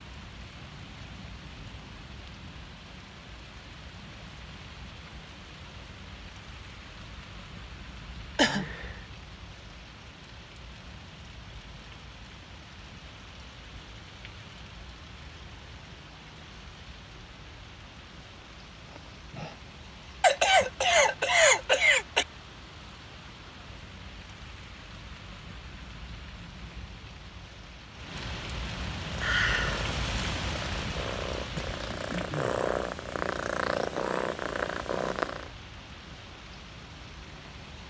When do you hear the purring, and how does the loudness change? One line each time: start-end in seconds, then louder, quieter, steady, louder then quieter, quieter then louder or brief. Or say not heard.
29.0-35.5 louder.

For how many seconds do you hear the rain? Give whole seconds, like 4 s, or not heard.
38 s.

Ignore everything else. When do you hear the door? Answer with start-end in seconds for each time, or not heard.
not heard.